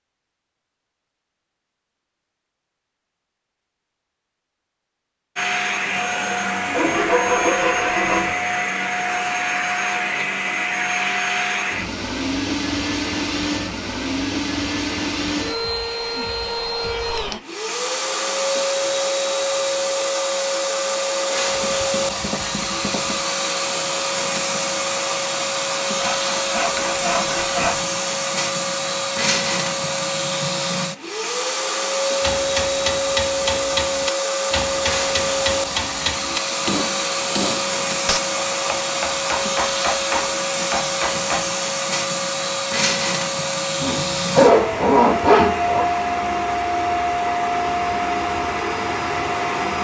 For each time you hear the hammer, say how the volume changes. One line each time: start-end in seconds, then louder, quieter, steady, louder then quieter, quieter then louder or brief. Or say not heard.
32.0-41.5 steady.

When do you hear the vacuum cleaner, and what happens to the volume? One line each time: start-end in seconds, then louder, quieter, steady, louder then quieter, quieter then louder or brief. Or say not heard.
5.3-49.7 steady.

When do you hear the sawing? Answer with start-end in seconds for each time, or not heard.
6.7-8.3, 21.4-23.2, 25.9-27.9, 43.8-45.9.